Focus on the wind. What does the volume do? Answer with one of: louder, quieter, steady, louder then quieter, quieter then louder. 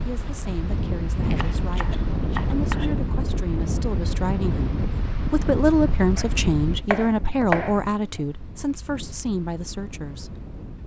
quieter.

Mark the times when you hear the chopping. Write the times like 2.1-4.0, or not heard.
1.2-3.0, 6.2-8.2.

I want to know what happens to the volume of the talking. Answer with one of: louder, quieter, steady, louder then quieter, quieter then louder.
louder then quieter.